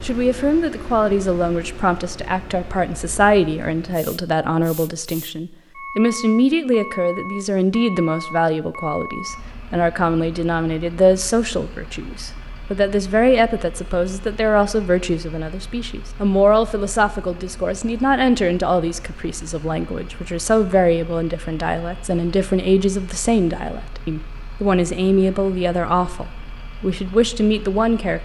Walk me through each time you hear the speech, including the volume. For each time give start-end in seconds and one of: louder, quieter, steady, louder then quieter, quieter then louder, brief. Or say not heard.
0.0-28.2 steady.